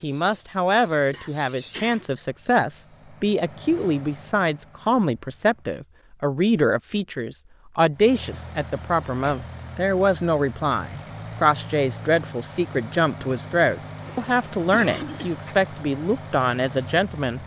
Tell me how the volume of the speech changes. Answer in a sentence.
The volume of the speech stays about the same.